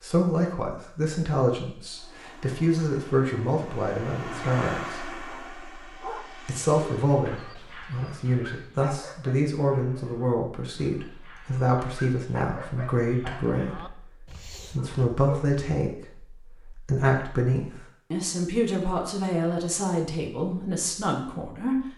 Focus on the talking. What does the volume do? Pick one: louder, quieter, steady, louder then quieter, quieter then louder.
steady.